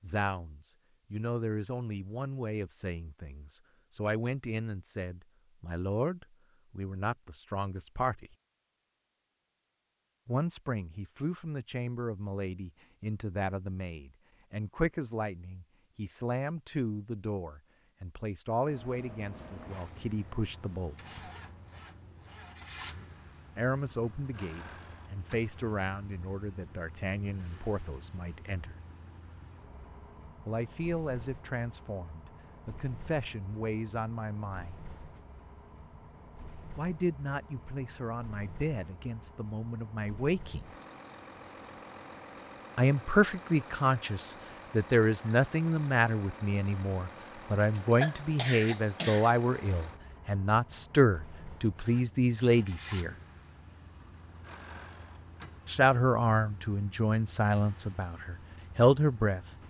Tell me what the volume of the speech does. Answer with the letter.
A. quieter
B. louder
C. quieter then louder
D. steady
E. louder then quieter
B.